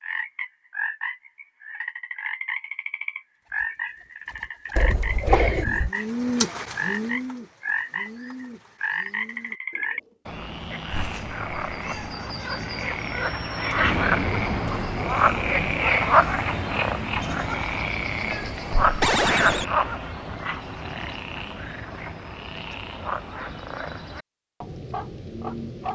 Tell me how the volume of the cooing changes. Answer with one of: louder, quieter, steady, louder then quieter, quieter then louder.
louder then quieter.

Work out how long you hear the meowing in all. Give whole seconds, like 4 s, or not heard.
4 s.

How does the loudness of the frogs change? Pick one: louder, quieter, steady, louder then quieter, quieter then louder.
louder then quieter.